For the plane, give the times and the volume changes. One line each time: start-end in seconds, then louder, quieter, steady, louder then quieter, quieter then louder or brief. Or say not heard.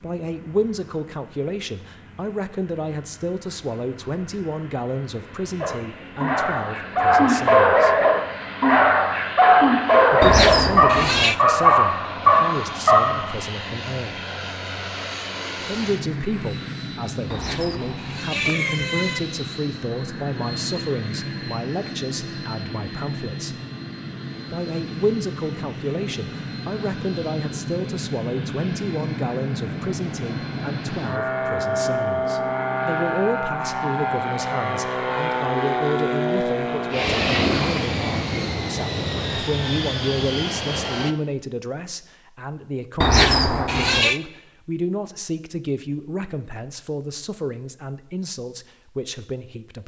0.0-41.1 louder.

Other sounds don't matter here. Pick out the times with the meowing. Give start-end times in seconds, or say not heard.
10.2-11.3, 17.3-19.2, 43.0-44.2.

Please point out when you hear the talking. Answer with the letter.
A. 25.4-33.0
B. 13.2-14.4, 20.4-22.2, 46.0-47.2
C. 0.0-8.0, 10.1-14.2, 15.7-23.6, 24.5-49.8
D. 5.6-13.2
C.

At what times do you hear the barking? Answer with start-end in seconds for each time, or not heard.
5.6-13.2.